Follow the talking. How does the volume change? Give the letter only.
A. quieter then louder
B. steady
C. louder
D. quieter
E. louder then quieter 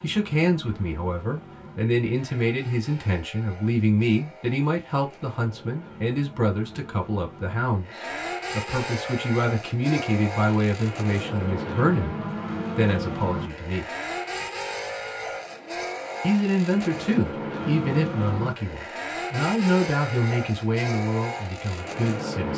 B.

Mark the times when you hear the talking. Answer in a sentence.
The talking can be heard from 0.0 to 13.8 s and from 16.2 to 22.5 s.